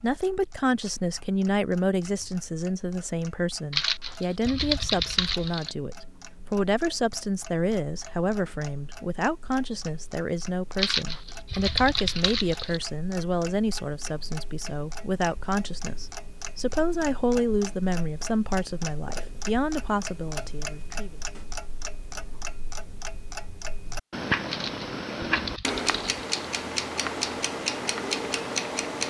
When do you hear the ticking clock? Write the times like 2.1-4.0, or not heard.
0.0-29.0.